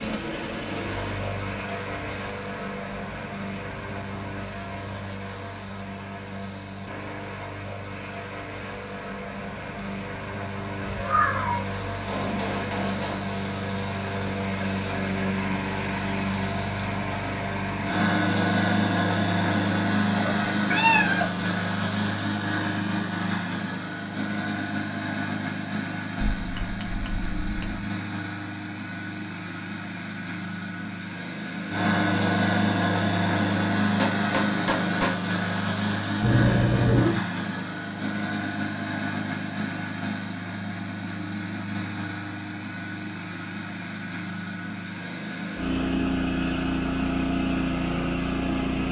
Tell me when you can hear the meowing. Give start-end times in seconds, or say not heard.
10.8-11.7, 20.2-21.2, 36.2-37.1.